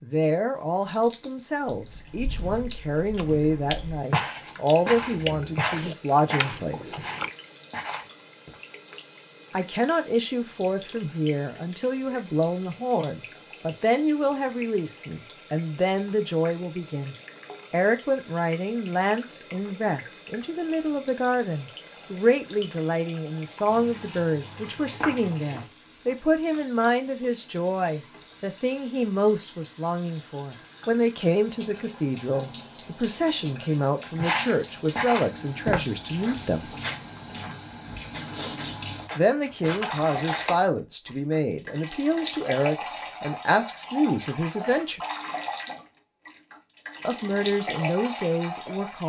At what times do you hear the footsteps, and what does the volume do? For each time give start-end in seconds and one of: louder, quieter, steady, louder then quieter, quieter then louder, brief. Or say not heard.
1.8-8.6 louder then quieter
25.0-26.2 brief
34.1-40.5 quieter.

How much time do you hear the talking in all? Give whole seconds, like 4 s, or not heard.
42 s.